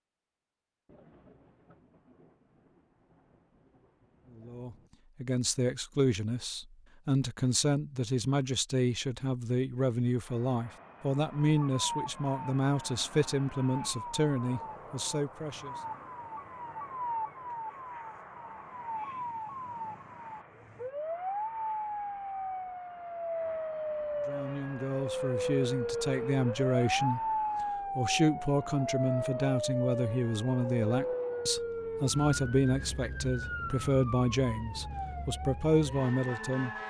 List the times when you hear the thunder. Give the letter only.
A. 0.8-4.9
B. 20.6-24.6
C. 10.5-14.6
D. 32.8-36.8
A.